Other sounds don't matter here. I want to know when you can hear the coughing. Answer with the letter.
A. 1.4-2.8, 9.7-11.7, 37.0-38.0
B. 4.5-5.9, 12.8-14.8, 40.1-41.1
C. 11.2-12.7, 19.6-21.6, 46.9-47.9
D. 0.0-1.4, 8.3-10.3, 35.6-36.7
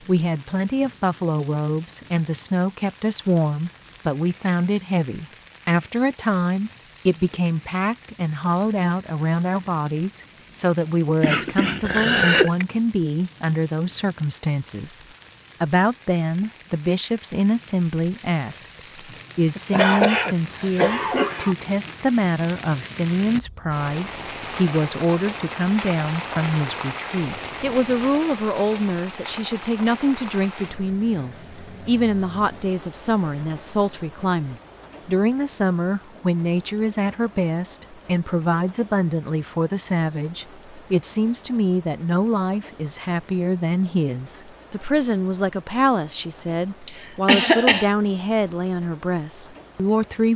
C.